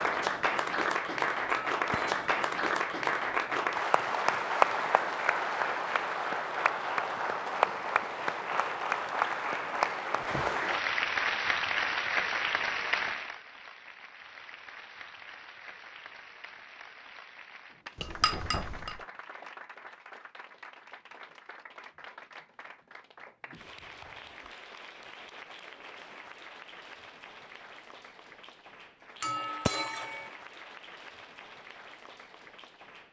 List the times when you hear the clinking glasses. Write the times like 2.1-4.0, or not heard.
1.4-2.1, 17.9-19.0, 29.2-30.3.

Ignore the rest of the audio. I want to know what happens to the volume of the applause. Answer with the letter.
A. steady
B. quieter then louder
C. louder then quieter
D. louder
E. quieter
E.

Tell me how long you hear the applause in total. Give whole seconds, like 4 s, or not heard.
33 s.